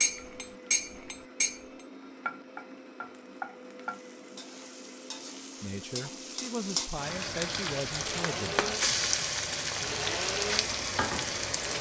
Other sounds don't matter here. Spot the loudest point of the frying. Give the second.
9 s.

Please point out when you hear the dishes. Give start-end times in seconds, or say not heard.
0.0-1.6.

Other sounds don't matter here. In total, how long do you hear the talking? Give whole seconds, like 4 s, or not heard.
3 s.